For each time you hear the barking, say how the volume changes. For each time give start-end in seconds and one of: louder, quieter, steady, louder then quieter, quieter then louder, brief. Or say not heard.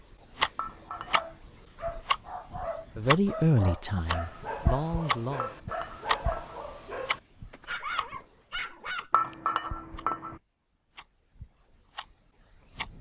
0.8-9.1 steady.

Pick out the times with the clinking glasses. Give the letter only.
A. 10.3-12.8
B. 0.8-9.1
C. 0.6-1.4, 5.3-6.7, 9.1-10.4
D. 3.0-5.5
C.